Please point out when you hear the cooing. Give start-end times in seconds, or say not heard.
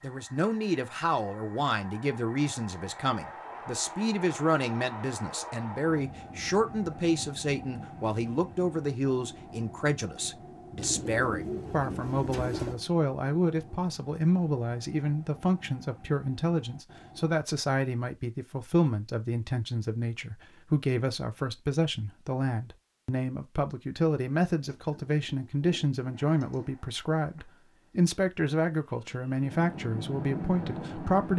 10.8-12.8, 24.6-26.7.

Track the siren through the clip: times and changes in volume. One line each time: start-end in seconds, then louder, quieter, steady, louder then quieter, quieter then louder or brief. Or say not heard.
not heard.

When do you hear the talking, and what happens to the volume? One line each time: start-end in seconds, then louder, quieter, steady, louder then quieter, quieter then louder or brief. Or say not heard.
0.0-31.3 steady.